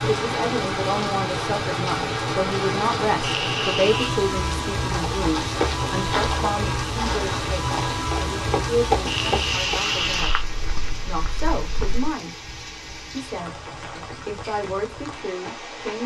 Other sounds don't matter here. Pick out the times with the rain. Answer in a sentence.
The rain can be heard from 0.0 to 16.0 s.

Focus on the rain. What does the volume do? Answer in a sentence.
The loudness of the rain goes down.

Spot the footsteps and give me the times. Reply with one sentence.
The footsteps can be heard from 4.8 to 12.1 s.